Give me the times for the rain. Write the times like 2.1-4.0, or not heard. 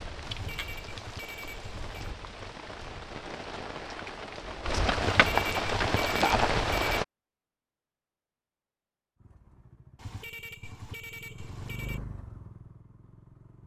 0.0-7.0.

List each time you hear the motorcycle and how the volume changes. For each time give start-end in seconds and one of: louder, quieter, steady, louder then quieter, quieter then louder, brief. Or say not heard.
9.2-13.6 louder then quieter.